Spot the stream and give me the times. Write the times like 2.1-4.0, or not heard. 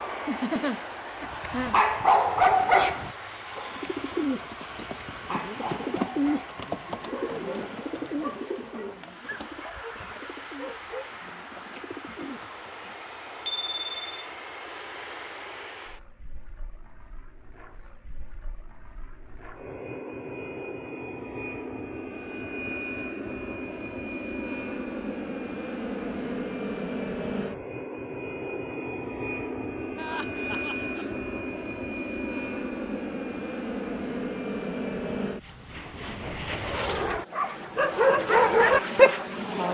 not heard.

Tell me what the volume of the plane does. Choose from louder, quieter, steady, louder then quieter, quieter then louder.
louder.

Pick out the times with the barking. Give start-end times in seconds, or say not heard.
1.1-11.2, 37.3-39.6.